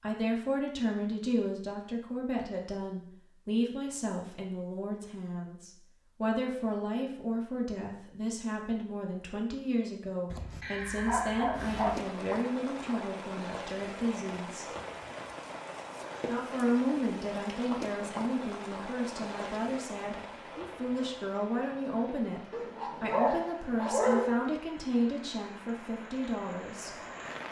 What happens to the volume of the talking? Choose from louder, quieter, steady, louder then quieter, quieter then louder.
steady.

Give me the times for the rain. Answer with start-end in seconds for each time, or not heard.
11.5-27.4.